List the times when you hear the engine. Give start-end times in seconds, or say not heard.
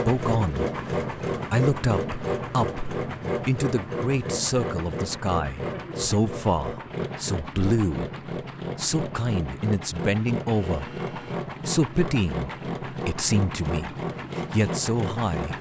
0.0-15.5.